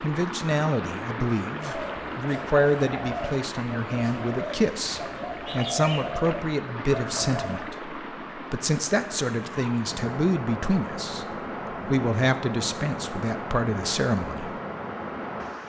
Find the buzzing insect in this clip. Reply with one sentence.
The buzzing insect can't be heard in this clip.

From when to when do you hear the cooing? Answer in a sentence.
You can hear the cooing from 1.6 to 7.6 s.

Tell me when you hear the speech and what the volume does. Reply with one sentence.
You can hear the speech from 0.0 to 14.6 s, at a steady volume.